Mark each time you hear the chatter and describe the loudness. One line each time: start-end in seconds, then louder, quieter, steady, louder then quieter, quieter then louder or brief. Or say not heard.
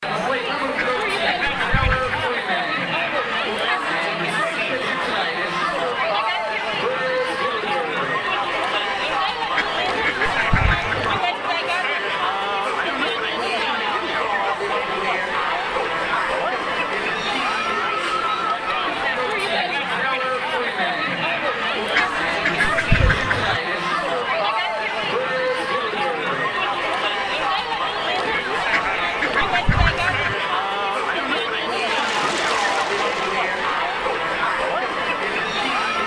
0.0-36.0 steady.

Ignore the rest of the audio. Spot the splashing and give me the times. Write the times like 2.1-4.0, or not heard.
31.8-33.9.